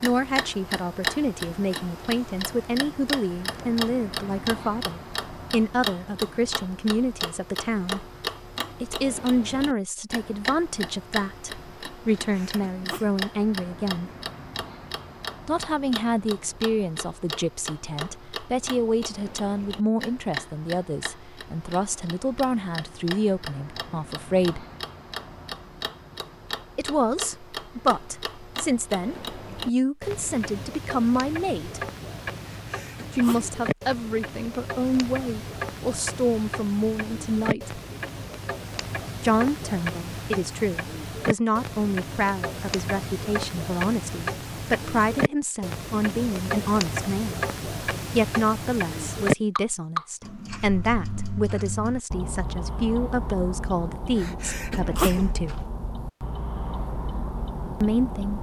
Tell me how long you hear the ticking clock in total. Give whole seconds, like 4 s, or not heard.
58 s.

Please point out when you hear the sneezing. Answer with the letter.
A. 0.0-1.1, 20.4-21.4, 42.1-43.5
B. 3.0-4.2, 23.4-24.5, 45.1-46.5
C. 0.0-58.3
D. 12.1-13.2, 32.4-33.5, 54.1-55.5
D.